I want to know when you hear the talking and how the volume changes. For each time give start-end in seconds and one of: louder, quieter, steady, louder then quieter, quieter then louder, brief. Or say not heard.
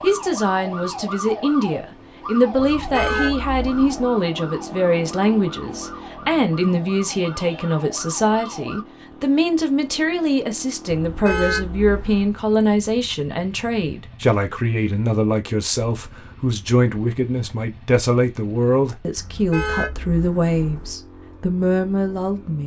0.0-22.6 steady.